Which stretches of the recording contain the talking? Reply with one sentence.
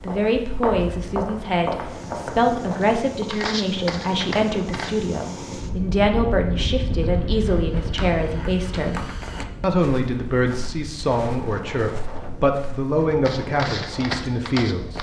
You can hear the talking from 0.0 to 9.0 s and from 9.6 to 14.9 s.